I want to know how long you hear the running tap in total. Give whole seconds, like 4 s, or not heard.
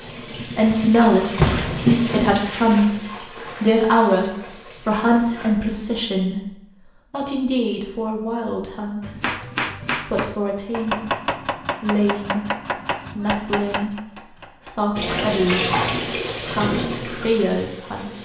9 s.